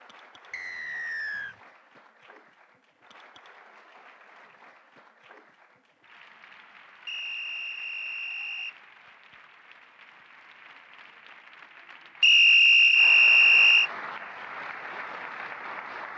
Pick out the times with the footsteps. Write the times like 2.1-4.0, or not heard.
not heard.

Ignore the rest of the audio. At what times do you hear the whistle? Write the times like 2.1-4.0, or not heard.
0.5-1.6, 7.0-8.8, 12.2-13.9.